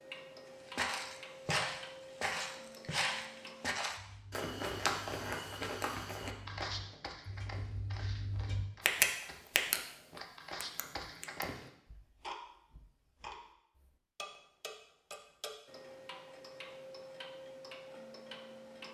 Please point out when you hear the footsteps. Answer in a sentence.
You can hear the footsteps from 0.7 to 11.7 s.